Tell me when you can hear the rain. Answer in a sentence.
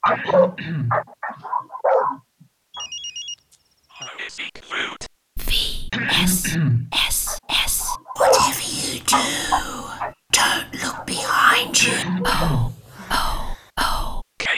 The rain can't be heard in this clip.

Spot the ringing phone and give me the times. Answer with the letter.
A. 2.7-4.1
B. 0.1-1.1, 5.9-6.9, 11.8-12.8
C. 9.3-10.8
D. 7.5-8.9
A.